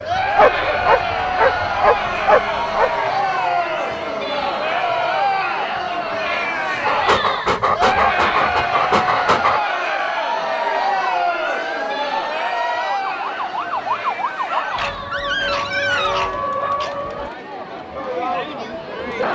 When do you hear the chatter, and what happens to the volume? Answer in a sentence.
You can hear the chatter from 0.0 to 19.2 s, getting quieter.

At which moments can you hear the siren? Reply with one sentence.
The siren can be heard from 0.0 to 17.3 s.